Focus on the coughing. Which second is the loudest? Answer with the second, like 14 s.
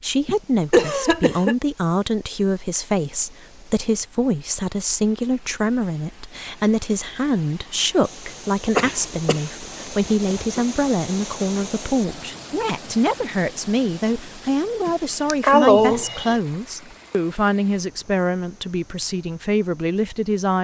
16 s.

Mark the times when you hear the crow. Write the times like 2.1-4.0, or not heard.
not heard.